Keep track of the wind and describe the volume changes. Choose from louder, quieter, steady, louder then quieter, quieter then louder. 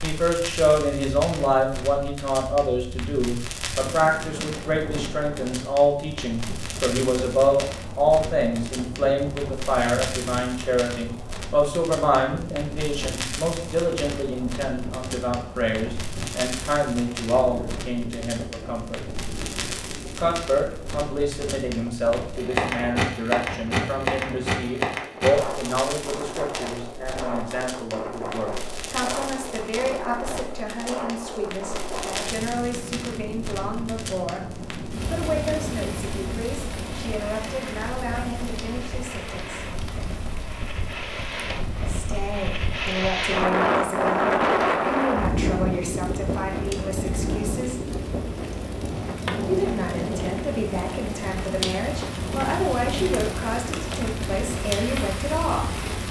louder.